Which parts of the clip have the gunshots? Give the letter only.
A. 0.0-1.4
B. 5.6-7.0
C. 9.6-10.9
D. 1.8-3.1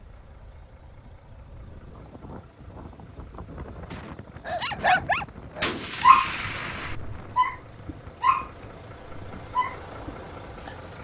B.